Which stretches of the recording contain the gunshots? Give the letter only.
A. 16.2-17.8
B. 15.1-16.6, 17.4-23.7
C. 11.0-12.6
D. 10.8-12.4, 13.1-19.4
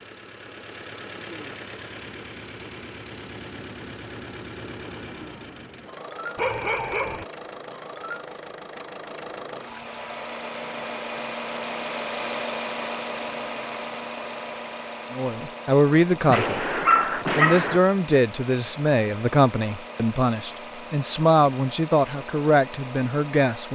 A.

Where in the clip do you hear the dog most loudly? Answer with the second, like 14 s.
17 s.